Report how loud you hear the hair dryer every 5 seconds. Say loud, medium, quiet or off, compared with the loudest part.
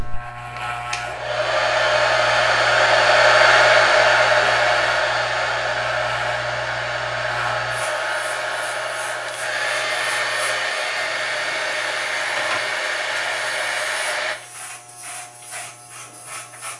loud, medium, medium, off.